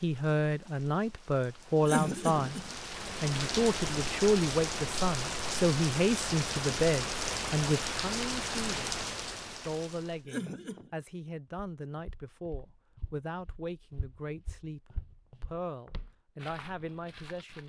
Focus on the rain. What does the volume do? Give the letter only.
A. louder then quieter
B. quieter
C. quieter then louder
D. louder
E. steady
D.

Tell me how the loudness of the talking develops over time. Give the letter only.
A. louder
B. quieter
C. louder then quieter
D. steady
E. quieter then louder
B.